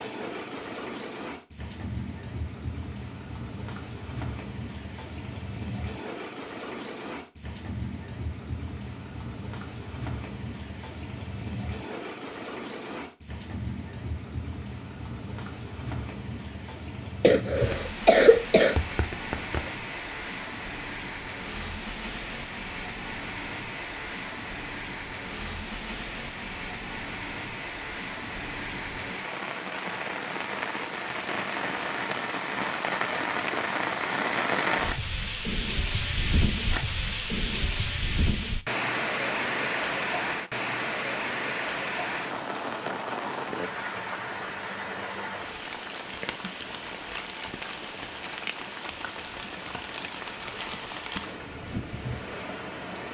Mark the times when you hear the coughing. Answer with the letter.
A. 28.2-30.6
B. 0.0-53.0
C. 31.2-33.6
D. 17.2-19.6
D.